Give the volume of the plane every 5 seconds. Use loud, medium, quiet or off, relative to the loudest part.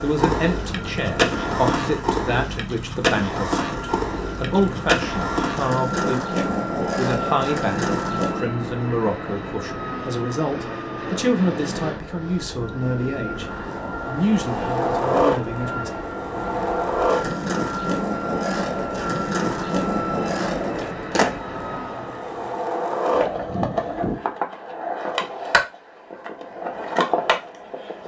loud, loud, loud, loud, loud, off.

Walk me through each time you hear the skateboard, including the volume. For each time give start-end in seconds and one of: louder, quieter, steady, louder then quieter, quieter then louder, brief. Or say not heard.
0.0-8.5 steady
13.4-28.0 steady.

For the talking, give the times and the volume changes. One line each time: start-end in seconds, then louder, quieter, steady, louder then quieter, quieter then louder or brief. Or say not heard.
0.0-15.9 steady.